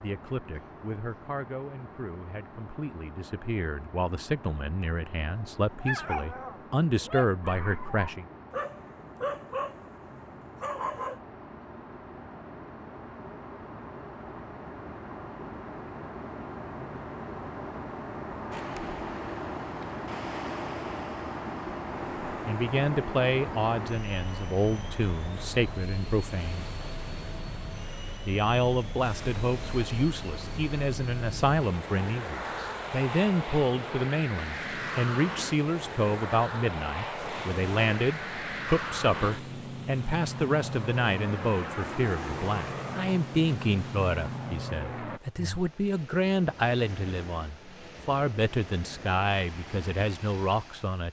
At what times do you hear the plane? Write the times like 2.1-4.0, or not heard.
0.0-45.2.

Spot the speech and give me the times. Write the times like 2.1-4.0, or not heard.
0.0-8.2, 22.2-26.6, 28.2-51.0.